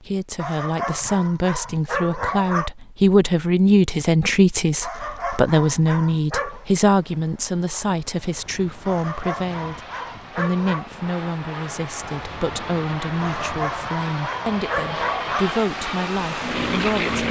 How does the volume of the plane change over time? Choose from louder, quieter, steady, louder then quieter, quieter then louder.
louder.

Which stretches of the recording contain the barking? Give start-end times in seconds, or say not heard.
0.3-2.7, 4.8-6.7, 8.8-10.9, 13.2-15.5.